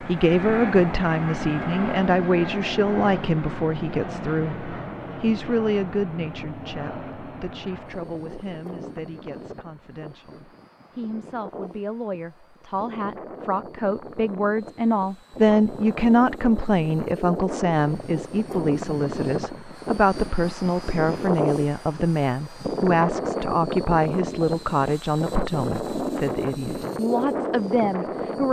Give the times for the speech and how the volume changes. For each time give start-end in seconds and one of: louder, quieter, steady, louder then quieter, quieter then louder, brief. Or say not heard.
0.0-28.4 quieter then louder.